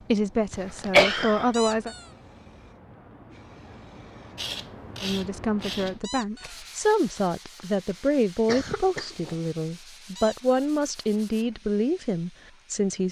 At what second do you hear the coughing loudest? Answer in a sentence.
The loudest moment of the coughing is at 1 second.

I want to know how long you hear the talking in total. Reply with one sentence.
You can hear the talking for 10 seconds altogether.